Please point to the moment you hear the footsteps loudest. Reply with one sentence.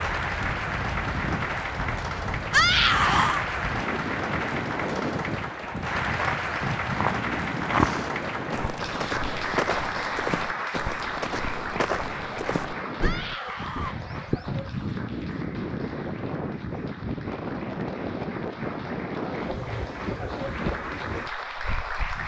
The volume of the footsteps peaks at 8 seconds.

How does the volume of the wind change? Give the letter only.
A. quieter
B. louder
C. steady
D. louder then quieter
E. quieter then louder
E.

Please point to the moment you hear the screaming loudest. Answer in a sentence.
The volume of the screaming peaks at 3 seconds.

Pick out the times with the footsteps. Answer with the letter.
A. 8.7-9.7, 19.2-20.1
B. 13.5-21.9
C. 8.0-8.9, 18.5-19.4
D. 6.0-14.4
D.